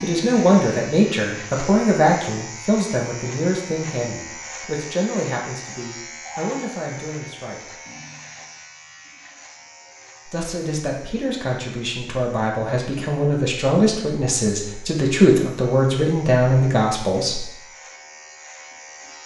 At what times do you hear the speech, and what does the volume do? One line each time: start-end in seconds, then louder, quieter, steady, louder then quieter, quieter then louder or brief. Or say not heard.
0.0-7.8 quieter
10.2-17.5 louder.